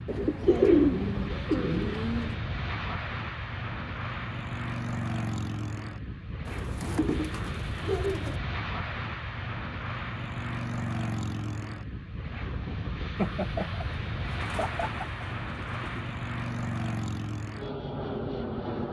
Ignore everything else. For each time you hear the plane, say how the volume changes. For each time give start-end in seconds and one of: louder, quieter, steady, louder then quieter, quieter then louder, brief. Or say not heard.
0.0-18.8 steady.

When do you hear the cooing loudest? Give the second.
1 s.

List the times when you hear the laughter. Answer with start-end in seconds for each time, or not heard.
0.4-0.8, 7.8-8.4, 13.2-15.2.